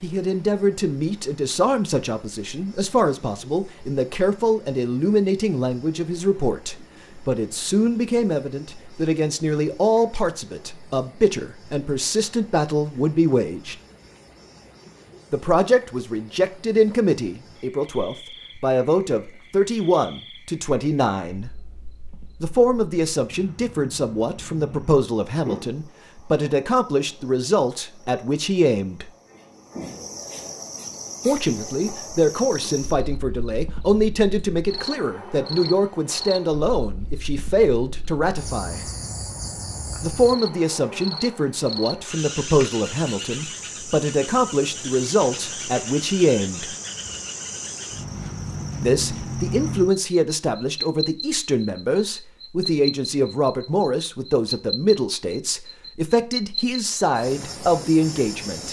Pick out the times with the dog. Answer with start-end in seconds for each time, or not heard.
not heard.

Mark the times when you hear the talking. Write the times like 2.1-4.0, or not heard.
0.0-13.8, 15.3-21.5, 22.4-29.1, 31.2-38.9, 40.0-46.6, 48.8-58.6.